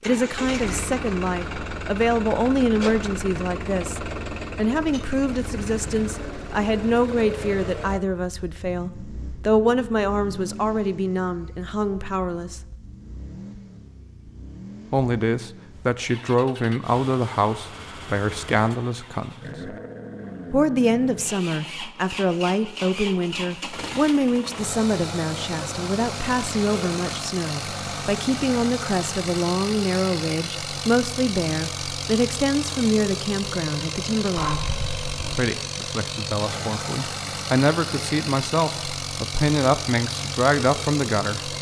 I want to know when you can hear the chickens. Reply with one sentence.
The chickens can be heard from 34.4 to 35.4 s.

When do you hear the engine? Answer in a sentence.
The engine can be heard from 0.0 to 41.5 s.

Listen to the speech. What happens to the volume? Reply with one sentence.
The volume of the speech stays about the same.